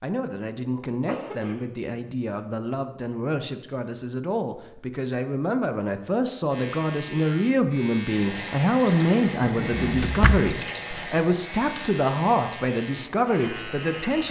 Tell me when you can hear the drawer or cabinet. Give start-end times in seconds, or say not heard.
9.4-10.6.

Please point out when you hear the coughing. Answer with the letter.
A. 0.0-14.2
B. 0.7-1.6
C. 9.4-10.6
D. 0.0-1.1
B.